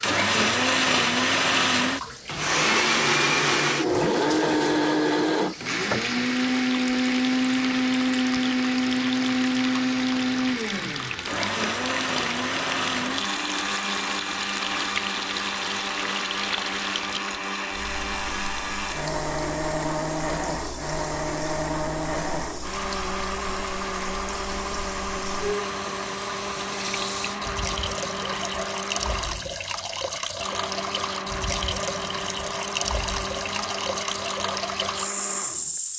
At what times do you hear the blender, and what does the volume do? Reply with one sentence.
The blender can be heard from 0.0 to 35.8 s, getting quieter.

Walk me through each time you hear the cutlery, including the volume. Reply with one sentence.
The cutlery can't be heard in this clip.